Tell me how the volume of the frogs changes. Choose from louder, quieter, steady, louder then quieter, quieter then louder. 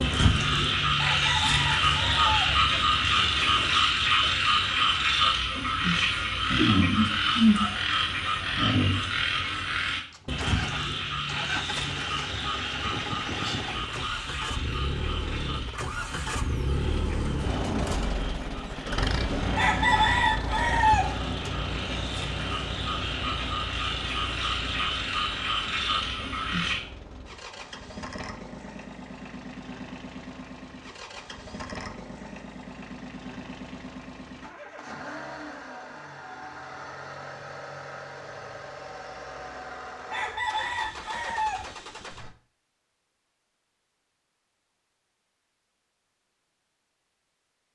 quieter then louder.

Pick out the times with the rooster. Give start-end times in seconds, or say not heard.
0.9-2.6, 19.6-21.2, 40.1-41.8.